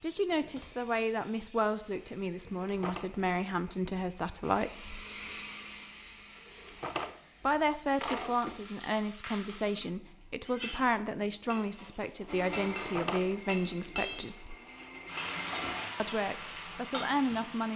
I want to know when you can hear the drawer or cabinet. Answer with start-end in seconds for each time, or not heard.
2.6-3.0, 6.5-8.6, 12.8-13.8.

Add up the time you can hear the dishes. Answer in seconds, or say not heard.
not heard.